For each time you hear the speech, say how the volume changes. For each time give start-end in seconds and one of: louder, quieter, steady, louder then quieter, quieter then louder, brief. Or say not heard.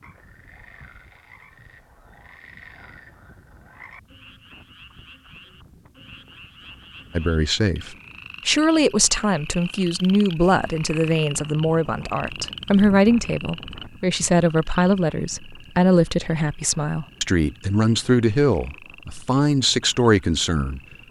7.2-20.8 steady.